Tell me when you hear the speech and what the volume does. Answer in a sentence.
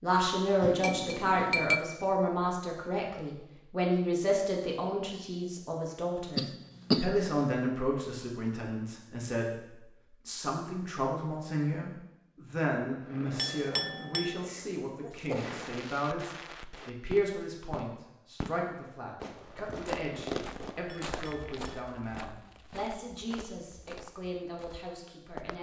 The speech can be heard from 0.0 to 25.5 s, getting quieter.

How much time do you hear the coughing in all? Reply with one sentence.
The coughing can be heard for 2 seconds in total.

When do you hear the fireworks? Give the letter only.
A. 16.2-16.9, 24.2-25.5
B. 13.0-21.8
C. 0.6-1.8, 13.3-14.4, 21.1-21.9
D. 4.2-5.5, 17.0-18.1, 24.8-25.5
B.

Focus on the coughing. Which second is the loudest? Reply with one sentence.
The volume of the coughing peaks at 7 seconds.